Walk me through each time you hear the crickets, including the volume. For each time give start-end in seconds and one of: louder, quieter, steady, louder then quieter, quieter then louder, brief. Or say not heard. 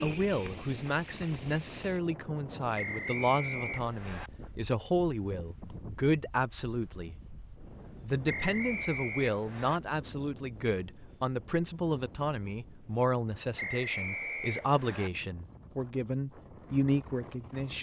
0.0-17.7 steady.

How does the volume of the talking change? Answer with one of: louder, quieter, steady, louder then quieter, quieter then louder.
steady.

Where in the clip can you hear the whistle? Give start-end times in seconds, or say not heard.
2.8-4.3, 8.2-9.8, 13.6-15.1.